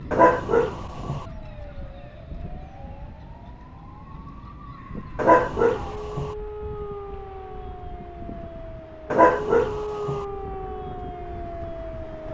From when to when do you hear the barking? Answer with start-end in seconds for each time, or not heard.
0.1-1.2, 5.2-6.3, 9.1-10.2.